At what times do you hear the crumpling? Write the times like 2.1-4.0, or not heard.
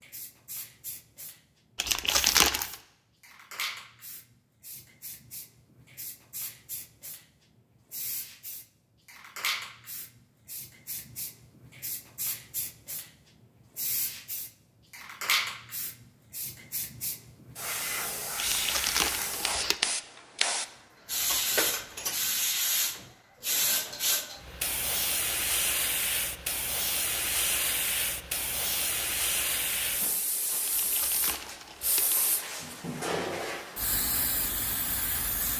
1.8-2.8, 18.4-19.8, 30.6-32.2.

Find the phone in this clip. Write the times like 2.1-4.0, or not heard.
not heard.